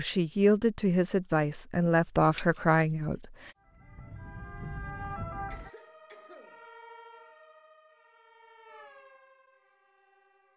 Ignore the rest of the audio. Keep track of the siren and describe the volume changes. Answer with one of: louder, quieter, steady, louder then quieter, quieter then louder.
quieter.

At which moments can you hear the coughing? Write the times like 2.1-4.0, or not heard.
5.5-6.7.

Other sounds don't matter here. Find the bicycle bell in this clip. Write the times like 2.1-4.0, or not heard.
2.4-3.2.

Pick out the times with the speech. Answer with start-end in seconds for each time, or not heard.
0.0-3.5.